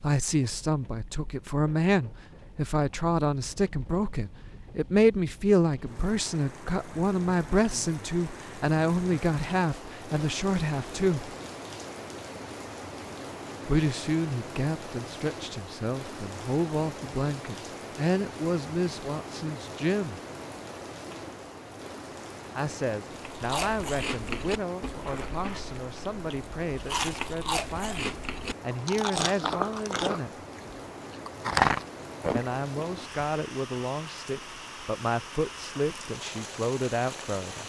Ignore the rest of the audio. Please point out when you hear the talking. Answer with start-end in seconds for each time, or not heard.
0.0-11.3, 13.7-20.2, 22.6-30.4, 32.4-37.6.